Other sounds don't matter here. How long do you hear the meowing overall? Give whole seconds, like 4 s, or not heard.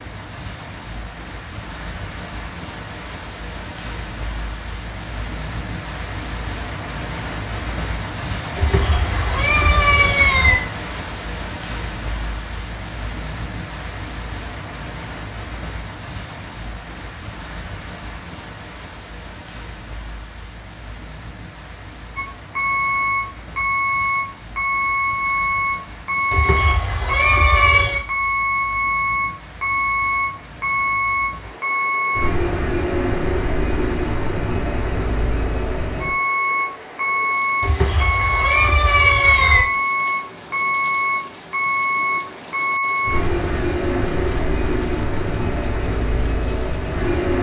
6 s.